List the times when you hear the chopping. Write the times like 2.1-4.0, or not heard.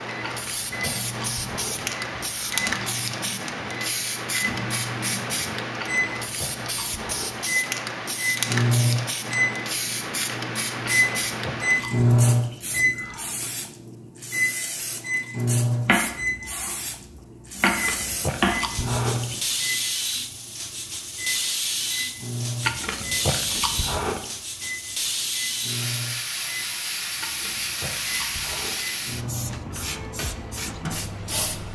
15.8-18.6.